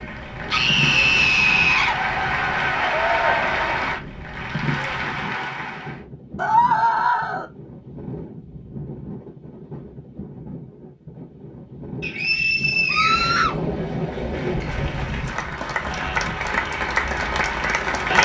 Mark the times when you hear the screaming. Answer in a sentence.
You can hear the screaming from 0.5 to 1.9 s, from 6.3 to 7.5 s and from 12.8 to 13.6 s.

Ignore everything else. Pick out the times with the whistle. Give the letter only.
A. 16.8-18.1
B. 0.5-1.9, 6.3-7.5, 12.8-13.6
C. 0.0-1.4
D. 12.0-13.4
D.